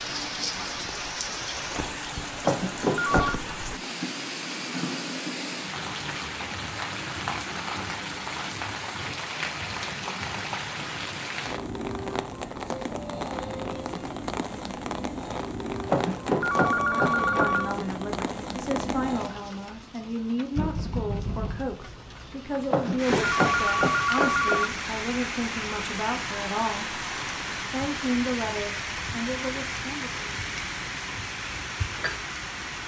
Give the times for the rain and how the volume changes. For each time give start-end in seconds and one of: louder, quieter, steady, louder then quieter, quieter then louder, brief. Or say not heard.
0.0-32.8 steady.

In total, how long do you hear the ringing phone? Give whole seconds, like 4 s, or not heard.
5 s.